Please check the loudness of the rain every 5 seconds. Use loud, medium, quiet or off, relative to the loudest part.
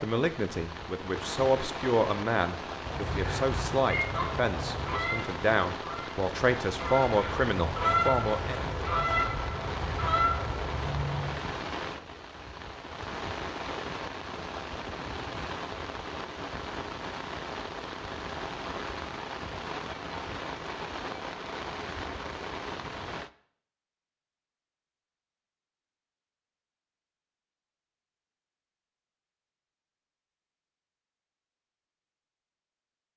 loud, loud, loud, loud, loud, off, off.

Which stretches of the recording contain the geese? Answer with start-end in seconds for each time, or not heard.
2.8-11.4.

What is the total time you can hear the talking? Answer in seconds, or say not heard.
9 s.